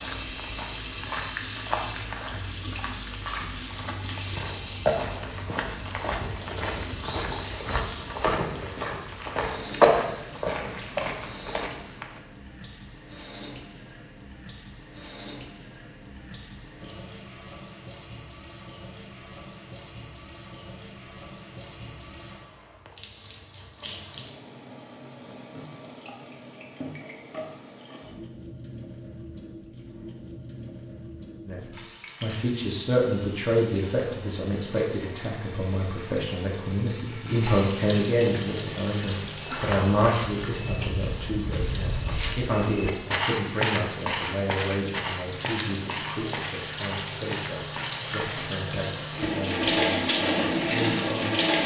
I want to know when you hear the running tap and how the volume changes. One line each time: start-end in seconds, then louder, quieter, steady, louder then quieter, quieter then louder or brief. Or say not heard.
0.0-51.6 quieter then louder.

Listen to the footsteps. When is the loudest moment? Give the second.
10 s.